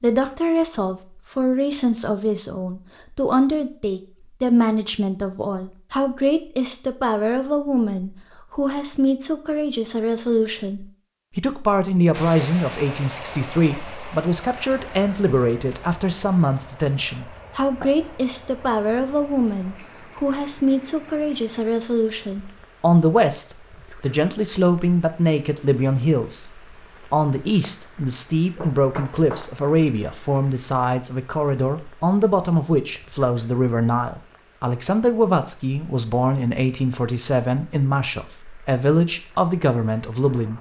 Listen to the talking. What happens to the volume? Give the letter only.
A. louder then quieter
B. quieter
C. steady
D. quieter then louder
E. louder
C.